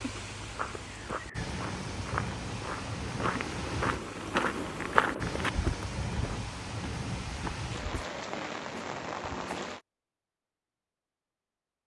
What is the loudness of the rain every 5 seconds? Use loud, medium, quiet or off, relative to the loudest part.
loud, loud, off.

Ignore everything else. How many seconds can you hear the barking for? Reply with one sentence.
You can't hear the barking here.